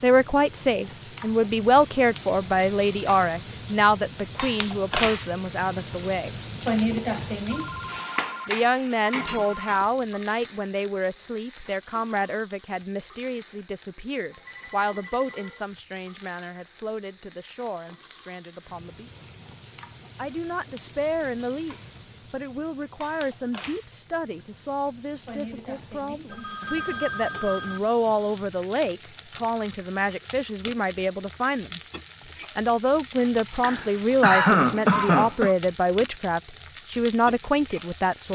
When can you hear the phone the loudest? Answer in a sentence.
The loudest moment of the phone is at 27 seconds.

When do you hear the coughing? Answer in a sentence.
You can hear the coughing from 33.6 to 35.5 s.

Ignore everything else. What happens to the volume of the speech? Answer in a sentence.
The loudness of the speech goes down, then up.